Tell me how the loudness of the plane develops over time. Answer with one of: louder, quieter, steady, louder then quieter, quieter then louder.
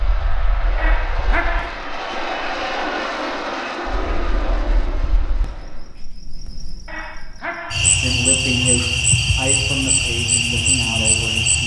louder then quieter.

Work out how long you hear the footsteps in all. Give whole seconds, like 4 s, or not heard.
not heard.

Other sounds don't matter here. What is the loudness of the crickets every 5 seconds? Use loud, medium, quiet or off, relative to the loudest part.
quiet, loud, loud.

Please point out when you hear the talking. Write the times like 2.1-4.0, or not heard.
7.8-11.6.